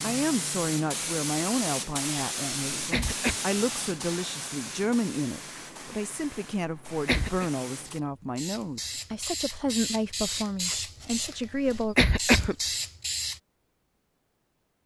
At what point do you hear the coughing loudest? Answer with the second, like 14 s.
12 s.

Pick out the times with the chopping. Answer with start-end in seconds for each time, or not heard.
not heard.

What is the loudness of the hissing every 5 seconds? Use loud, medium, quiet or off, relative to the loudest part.
loud, medium, loud.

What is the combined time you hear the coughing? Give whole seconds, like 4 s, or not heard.
2 s.